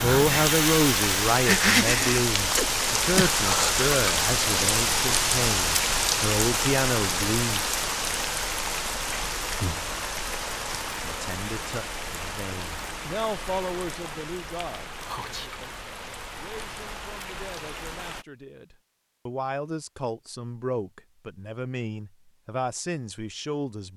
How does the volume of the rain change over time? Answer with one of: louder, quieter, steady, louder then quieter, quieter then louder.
quieter.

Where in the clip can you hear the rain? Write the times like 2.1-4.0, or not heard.
0.0-18.2.